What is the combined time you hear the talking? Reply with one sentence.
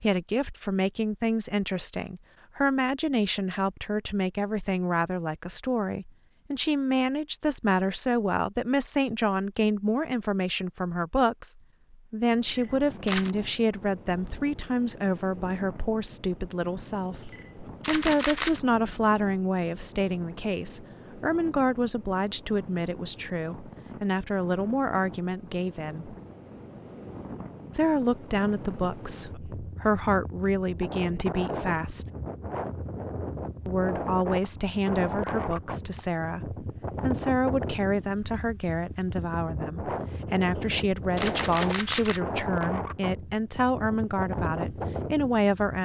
The talking can be heard for 42 seconds in total.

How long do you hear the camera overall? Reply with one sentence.
The camera can be heard for 4 seconds in total.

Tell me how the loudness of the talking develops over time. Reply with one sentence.
The volume of the talking stays about the same.